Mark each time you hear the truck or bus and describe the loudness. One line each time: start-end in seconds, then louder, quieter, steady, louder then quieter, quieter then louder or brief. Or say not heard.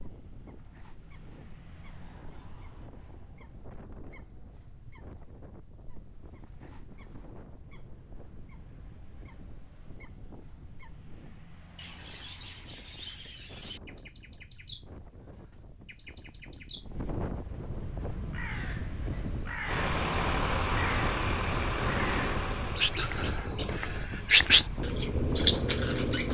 19.6-26.2 quieter.